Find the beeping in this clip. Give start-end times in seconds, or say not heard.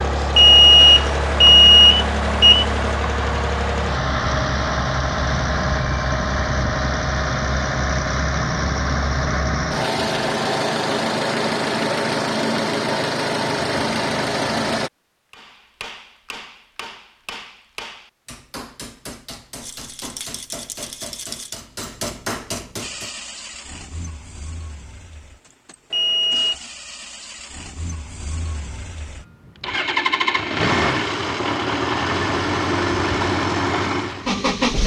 0.3-3.0, 25.9-26.6.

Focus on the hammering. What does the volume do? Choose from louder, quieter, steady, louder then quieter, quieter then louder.
louder.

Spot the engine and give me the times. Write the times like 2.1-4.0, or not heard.
0.0-14.9, 22.8-34.8.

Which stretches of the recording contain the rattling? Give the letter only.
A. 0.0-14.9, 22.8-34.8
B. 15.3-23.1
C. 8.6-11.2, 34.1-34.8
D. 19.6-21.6
D.